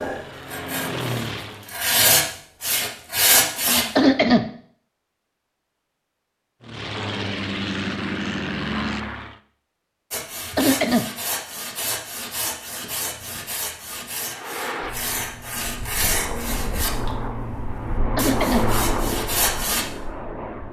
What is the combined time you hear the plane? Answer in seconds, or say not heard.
11 s.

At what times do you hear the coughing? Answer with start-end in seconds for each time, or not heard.
4.0-4.5, 10.6-11.1, 18.1-18.6.